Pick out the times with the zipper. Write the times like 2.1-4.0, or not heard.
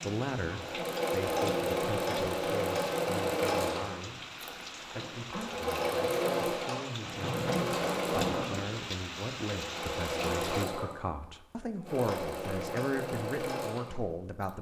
7.0-8.8.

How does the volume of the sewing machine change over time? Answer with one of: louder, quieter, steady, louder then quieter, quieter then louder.
quieter.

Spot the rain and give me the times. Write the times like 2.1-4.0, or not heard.
0.0-10.7.